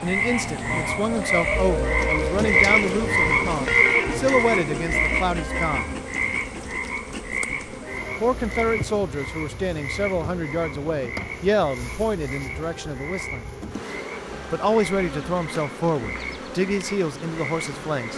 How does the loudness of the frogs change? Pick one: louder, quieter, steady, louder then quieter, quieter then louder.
quieter.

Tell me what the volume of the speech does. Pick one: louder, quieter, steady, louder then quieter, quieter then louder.
steady.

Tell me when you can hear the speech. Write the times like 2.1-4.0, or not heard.
0.0-5.9, 8.2-13.5, 14.5-18.1.